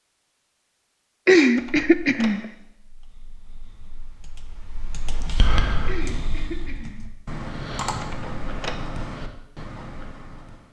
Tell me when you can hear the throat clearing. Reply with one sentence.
You can hear the throat clearing from 1.2 to 2.5 s and from 5.8 to 7.0 s.